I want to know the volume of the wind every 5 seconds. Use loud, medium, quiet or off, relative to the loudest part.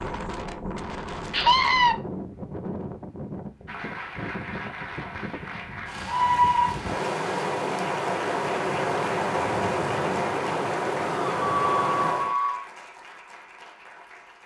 medium, loud, loud.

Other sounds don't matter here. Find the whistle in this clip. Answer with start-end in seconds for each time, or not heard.
not heard.